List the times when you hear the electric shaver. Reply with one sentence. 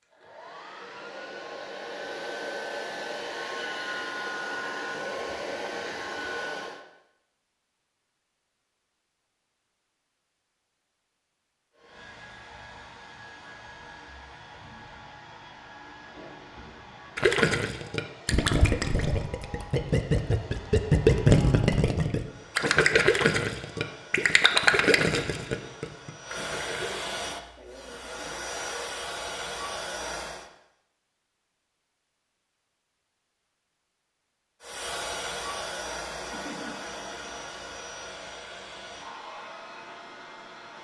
You can't hear the electric shaver here.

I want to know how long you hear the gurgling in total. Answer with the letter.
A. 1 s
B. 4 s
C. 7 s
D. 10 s
D.